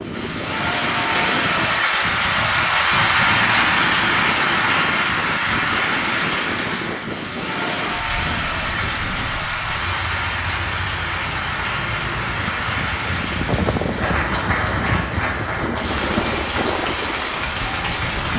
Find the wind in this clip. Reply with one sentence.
You can hear the wind from 0.0 to 18.3 s.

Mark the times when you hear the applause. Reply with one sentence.
You can hear the applause from 0.0 to 18.3 s.